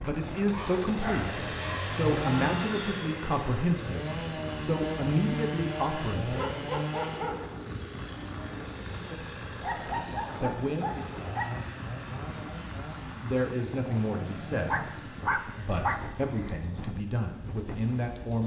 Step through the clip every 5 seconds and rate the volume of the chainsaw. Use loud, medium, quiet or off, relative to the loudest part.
loud, loud, medium, quiet.